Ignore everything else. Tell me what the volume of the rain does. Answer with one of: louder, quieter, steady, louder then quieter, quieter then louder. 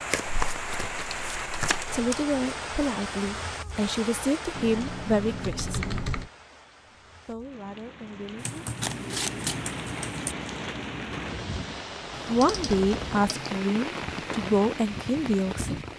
quieter then louder.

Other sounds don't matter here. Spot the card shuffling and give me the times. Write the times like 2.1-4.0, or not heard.
0.1-1.8, 8.8-9.6.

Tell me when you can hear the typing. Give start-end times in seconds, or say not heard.
0.2-2.2, 4.5-6.3, 8.3-10.3, 12.1-13.6.